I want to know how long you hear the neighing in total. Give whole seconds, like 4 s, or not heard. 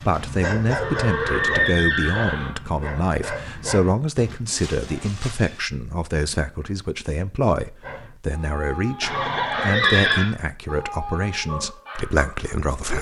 4 s.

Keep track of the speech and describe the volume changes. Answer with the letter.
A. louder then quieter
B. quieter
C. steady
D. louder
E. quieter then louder
C.